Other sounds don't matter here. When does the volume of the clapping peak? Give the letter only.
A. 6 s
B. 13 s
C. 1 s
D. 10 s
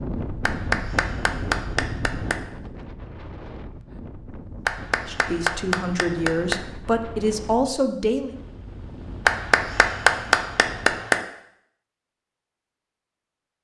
D.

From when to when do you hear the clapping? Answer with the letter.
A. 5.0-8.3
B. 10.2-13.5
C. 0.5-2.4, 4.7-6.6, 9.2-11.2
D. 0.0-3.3
C.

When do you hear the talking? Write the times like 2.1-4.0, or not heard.
5.0-8.3.